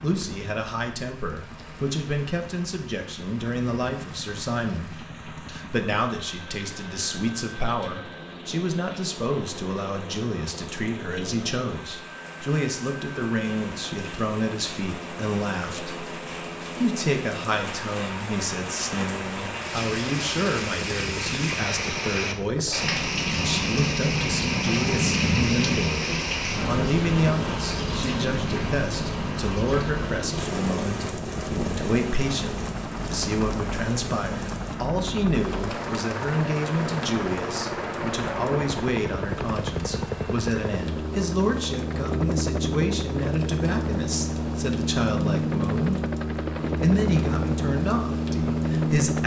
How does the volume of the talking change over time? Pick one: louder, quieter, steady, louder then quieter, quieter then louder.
steady.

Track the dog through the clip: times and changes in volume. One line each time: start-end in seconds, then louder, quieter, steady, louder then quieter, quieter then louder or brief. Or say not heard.
not heard.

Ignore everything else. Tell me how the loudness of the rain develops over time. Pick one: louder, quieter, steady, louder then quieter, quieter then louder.
louder then quieter.